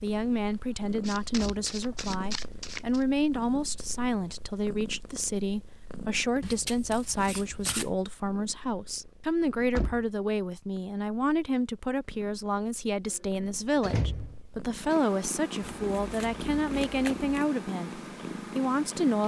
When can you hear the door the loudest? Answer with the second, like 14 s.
14 s.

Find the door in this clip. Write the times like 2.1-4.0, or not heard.
1.2-2.0, 9.6-10.1, 13.8-14.3.